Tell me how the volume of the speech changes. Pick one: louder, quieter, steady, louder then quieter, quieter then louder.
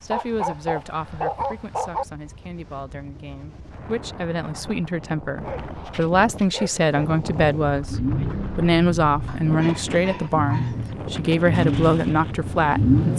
louder.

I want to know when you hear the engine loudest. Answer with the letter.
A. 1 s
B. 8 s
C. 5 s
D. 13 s
D.